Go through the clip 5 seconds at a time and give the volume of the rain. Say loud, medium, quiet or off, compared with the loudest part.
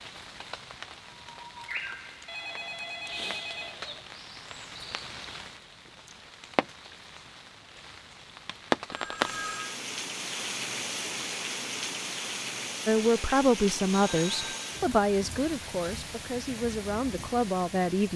medium, loud, loud, medium.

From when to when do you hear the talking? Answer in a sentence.
The talking can be heard from 12.8 to 18.1 s.